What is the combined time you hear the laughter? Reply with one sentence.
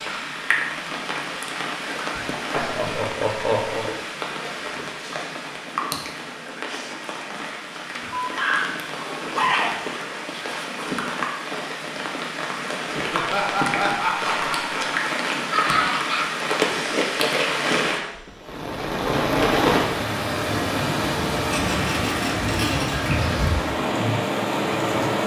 You can hear the laughter for 5 seconds altogether.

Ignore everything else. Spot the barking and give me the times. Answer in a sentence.
You can hear the barking from 8.1 to 9.8 s and from 15.5 to 16.8 s.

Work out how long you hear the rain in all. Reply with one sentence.
The rain can be heard for 25 seconds in total.